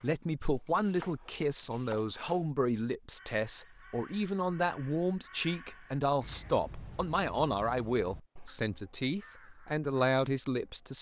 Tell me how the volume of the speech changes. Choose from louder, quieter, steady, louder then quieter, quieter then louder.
steady.